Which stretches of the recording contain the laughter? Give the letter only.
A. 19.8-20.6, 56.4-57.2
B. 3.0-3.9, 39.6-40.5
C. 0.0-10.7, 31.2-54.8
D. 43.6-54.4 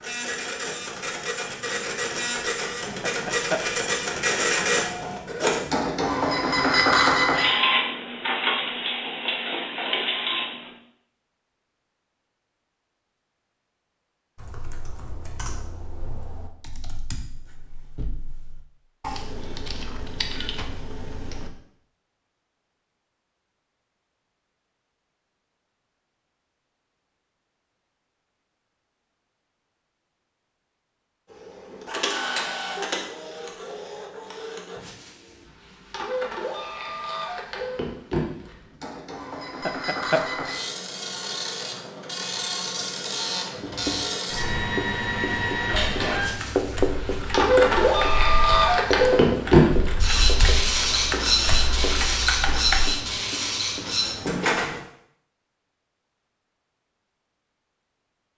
B.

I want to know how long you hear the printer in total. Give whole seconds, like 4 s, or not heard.
34 s.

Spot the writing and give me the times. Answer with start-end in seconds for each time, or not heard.
43.6-54.4.